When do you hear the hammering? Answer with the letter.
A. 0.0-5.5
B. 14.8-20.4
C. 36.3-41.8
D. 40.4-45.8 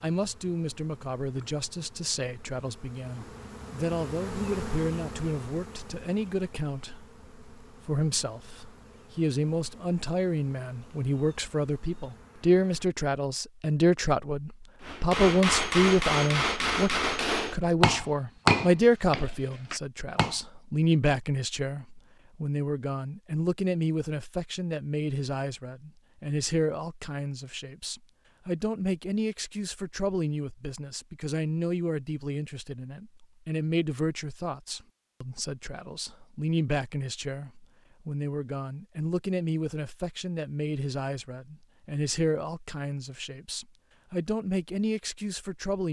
B.